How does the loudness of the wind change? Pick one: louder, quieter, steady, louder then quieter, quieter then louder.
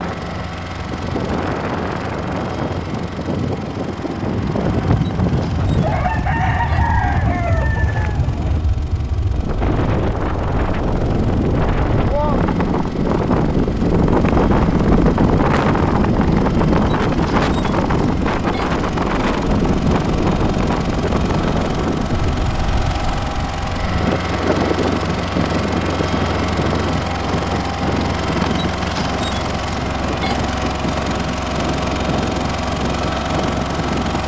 louder then quieter.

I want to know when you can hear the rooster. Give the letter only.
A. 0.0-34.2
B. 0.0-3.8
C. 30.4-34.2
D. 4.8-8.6
D.